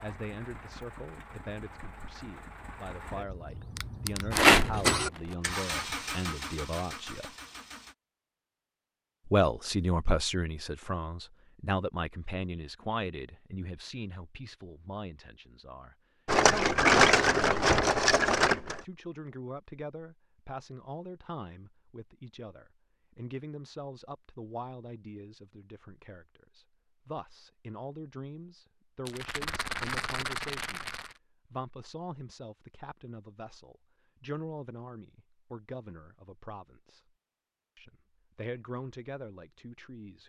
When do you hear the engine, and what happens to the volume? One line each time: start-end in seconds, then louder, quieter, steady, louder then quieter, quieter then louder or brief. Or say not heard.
0.0-8.0 louder then quieter.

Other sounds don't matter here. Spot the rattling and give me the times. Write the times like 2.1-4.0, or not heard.
4.3-4.8, 16.2-18.8, 29.1-31.1.